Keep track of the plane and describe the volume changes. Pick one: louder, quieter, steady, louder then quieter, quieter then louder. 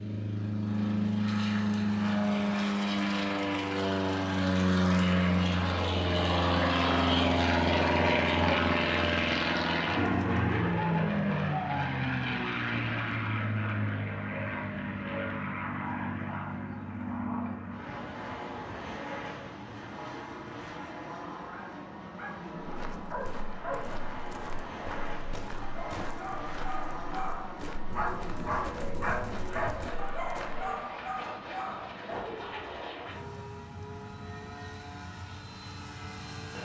quieter.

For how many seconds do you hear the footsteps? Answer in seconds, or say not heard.
8 s.